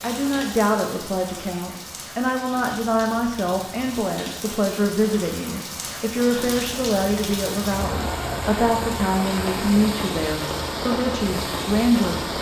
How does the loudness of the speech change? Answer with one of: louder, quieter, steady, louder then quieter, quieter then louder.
steady.